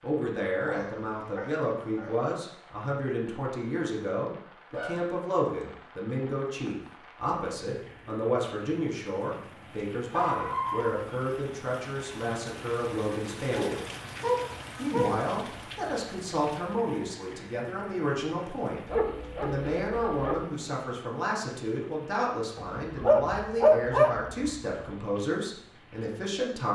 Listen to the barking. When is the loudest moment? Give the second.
24 s.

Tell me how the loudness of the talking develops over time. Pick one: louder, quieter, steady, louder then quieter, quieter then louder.
steady.